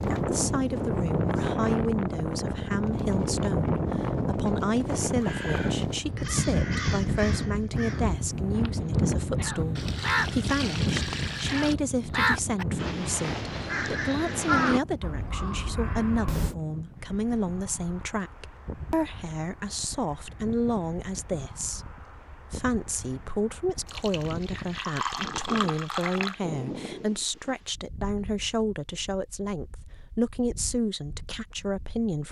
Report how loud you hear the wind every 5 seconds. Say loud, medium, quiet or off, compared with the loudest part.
loud, loud, medium, quiet, quiet, quiet, quiet.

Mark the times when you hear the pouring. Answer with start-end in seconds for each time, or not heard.
9.8-11.8, 23.9-26.4.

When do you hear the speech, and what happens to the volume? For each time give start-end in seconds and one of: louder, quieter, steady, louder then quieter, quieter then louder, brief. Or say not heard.
0.1-32.2 steady.